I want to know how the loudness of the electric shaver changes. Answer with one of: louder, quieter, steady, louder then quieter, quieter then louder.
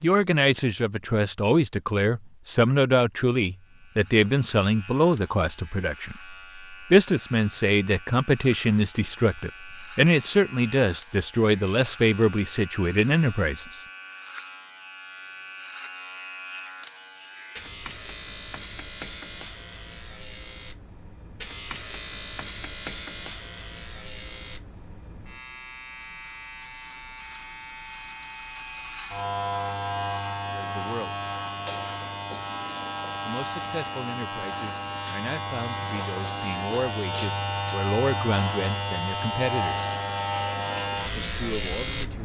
louder.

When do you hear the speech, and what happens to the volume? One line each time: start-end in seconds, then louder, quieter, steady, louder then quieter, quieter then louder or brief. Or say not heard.
0.0-13.8 steady
30.5-31.1 brief
33.2-39.9 louder
41.2-42.2 brief.